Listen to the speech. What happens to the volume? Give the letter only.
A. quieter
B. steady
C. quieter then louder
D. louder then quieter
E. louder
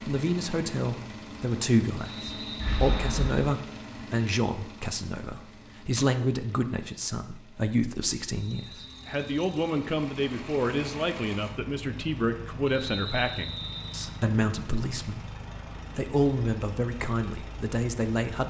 B.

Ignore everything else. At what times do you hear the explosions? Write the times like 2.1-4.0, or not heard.
2.5-3.5.